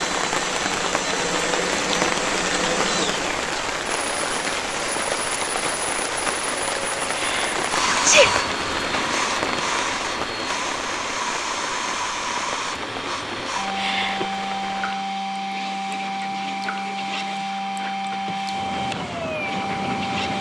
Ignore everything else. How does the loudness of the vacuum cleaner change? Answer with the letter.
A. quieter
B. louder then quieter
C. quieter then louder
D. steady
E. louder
D.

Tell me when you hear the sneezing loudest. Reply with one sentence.
The loudest moment of the sneezing is at 8 seconds.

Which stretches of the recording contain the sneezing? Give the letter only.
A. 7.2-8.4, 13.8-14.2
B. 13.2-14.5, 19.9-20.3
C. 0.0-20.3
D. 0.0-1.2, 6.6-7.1
A.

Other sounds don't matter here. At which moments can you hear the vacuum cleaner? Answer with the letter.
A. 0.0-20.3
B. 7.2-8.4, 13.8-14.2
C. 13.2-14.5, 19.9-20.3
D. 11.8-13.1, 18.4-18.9
A.